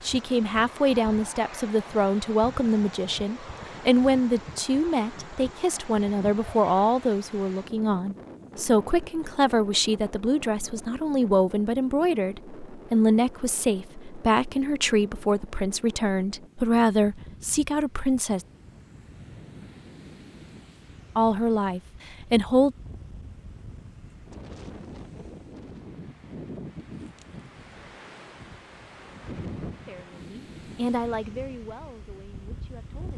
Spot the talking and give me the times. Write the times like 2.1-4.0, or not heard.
0.0-18.4, 21.1-22.8, 29.9-33.1.